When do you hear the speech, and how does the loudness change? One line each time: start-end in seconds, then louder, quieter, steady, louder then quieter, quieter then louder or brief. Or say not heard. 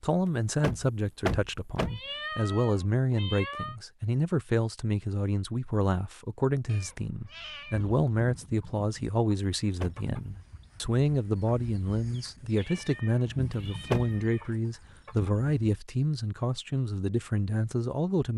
0.0-18.3 steady.